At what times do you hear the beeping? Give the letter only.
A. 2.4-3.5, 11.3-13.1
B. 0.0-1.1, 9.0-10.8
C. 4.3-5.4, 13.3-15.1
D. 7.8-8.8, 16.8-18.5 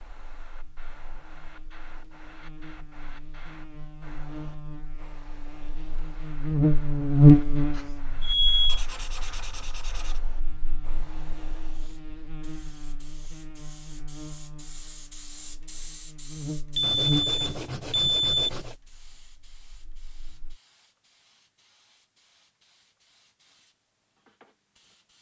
D.